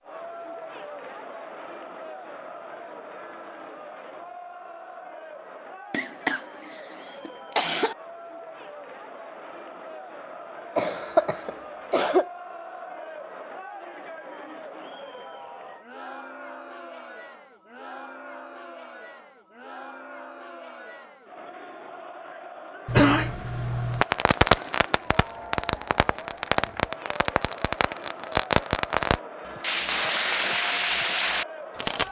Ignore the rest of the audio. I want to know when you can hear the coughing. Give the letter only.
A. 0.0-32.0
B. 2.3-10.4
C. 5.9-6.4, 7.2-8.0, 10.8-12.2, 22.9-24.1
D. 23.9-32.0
C.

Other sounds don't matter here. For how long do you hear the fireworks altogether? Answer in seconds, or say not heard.
8 s.